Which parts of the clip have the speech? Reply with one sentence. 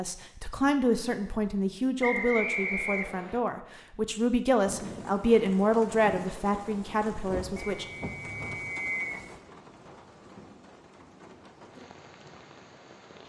The speech can be heard from 0.0 to 7.8 s.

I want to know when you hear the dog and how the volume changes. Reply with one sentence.
You can't hear the dog here.